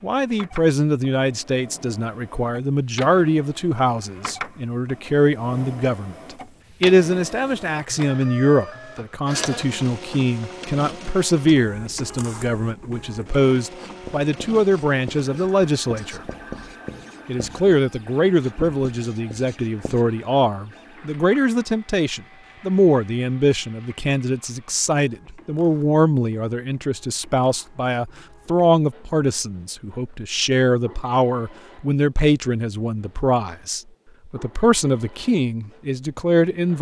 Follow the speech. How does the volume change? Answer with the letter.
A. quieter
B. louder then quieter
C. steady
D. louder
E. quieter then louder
C.